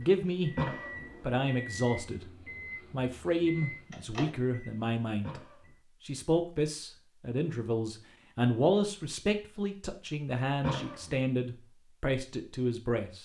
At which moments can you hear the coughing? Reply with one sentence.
You can hear the coughing from 0.6 to 1.1 s, from 5.2 to 5.8 s and from 10.6 to 11.2 s.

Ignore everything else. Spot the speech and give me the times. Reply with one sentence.
You can hear the speech from 0.0 to 0.6 s, from 1.2 to 2.3 s, from 2.9 to 5.4 s and from 6.0 to 13.2 s.